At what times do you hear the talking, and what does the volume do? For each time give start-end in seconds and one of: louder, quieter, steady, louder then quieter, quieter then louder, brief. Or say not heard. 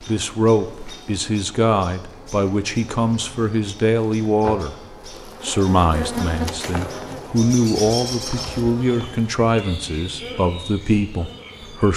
0.0-11.9 steady.